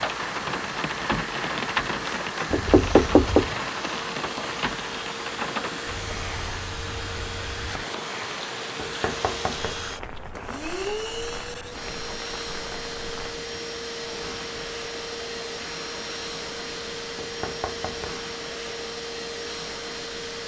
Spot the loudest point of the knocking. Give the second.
3 s.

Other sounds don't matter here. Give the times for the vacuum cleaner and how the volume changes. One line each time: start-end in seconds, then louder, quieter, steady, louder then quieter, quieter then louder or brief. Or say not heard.
0.0-20.4 steady.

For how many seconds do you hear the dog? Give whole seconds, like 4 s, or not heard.
not heard.